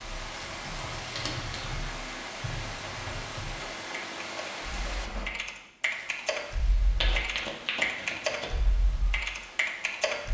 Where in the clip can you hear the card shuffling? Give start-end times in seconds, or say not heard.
0.9-1.8, 7.0-8.5.